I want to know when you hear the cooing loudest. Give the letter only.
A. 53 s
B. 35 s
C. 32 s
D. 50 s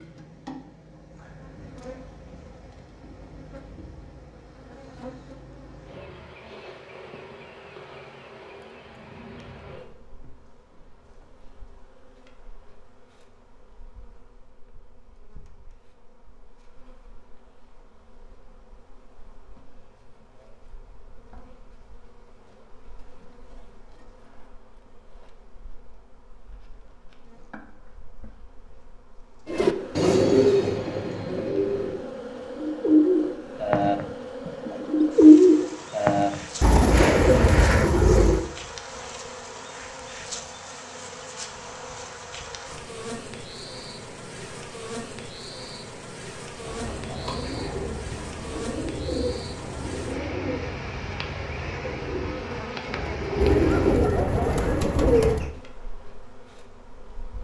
B.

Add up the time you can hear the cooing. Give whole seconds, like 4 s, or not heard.
18 s.